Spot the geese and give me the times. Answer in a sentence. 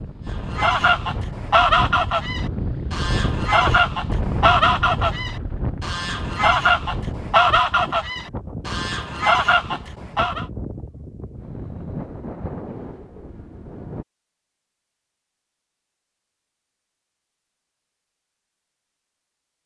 You can hear the geese from 0.5 to 10.4 s.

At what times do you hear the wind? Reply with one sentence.
You can hear the wind from 0.0 to 14.1 s.